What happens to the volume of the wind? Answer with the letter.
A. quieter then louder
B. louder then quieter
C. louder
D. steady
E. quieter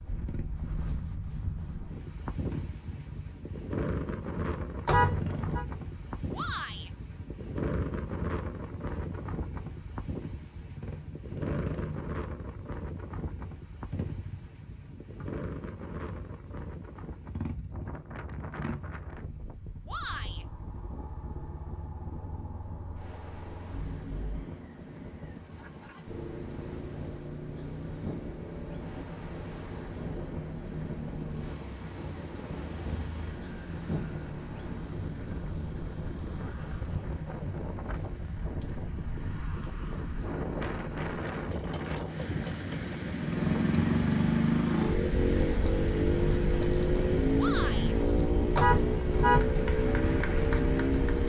A.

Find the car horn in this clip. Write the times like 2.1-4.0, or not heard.
4.8-5.7, 48.5-49.5.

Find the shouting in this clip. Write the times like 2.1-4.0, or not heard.
6.3-6.9, 19.9-20.4, 47.4-48.0.